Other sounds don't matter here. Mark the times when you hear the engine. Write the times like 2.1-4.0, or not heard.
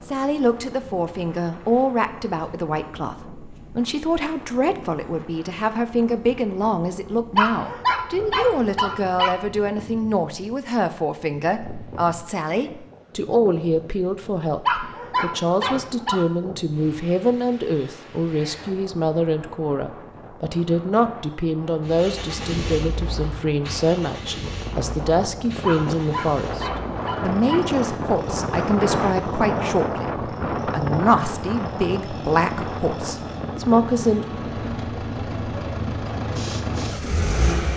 21.9-37.7.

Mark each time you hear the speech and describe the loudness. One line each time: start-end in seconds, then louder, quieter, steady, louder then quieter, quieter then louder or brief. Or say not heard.
0.1-34.2 steady.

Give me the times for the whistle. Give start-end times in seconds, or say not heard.
not heard.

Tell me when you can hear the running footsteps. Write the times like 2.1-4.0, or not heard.
not heard.